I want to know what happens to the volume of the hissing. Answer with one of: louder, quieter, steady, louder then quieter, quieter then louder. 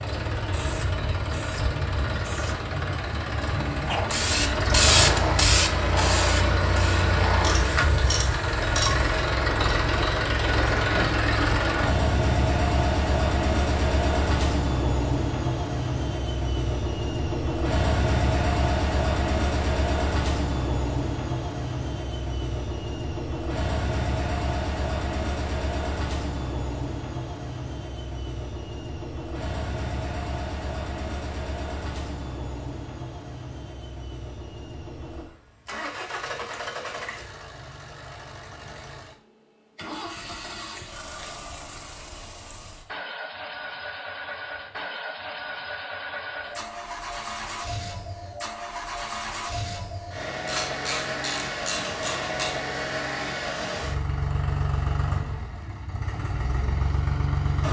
louder then quieter.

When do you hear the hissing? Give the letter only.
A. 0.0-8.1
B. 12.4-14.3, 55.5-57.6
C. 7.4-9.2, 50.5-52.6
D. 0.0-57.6
A.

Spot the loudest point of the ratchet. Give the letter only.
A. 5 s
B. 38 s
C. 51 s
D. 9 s
D.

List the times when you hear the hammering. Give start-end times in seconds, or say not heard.
not heard.